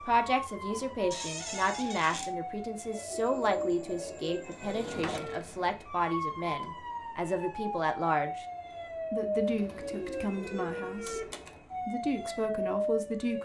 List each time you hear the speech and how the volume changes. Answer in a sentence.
You can hear the speech from 0.0 to 8.4 s, at a steady volume; briefly from 9.1 to 11.2 s; and briefly from 11.8 to 13.3 s.